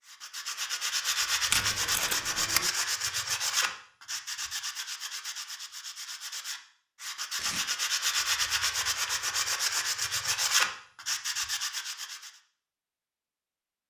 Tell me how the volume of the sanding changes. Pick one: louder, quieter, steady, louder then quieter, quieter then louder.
quieter then louder.